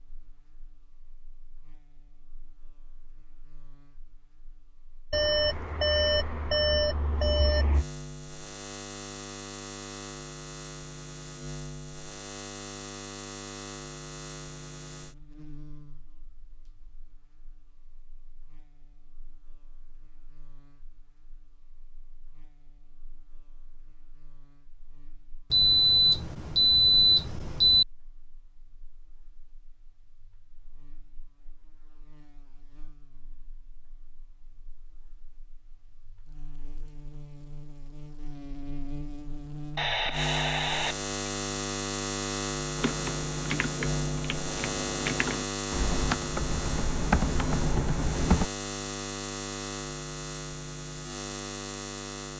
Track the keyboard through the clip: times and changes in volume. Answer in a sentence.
You can hear the keyboard from 42.8 to 48.5 s, getting louder.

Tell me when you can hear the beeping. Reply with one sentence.
You can hear the beeping from 5.1 to 7.8 s, from 25.5 to 27.9 s and from 39.8 to 41.0 s.